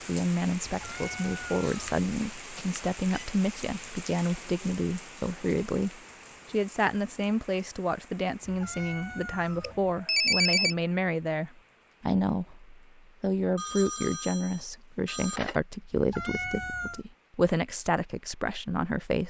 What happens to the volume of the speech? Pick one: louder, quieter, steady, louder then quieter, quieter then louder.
steady.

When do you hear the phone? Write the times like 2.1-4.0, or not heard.
1.6-3.2, 9.6-10.8, 13.6-15.6.